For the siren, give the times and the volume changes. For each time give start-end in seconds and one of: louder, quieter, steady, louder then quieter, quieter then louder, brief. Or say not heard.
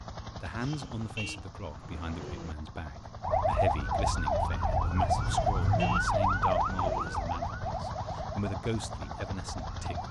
3.2-10.0 quieter.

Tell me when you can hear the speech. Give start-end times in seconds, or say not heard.
0.3-10.0.